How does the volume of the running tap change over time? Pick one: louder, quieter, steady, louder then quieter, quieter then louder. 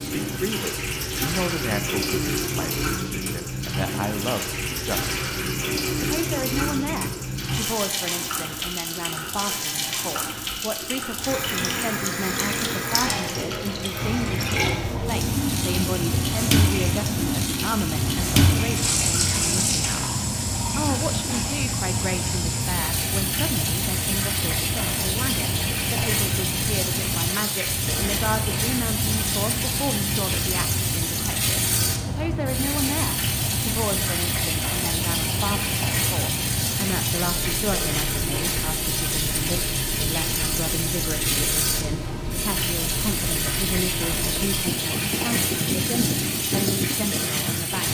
steady.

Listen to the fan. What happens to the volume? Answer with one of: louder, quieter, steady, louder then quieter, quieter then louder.
steady.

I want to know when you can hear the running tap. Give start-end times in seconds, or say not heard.
0.0-47.8.